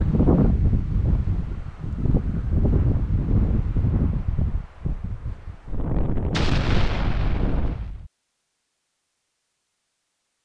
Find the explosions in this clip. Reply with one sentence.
The explosions can be heard from 6.3 to 8.1 s.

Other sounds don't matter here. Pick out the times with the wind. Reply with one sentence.
The wind can be heard from 0.0 to 7.8 s.